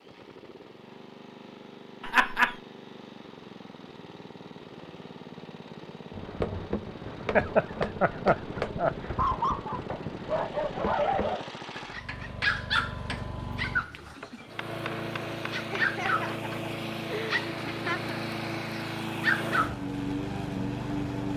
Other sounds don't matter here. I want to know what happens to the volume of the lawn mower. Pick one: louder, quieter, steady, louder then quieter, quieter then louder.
louder.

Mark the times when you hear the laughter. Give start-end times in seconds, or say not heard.
2.0-2.5, 7.3-9.4, 15.7-18.1.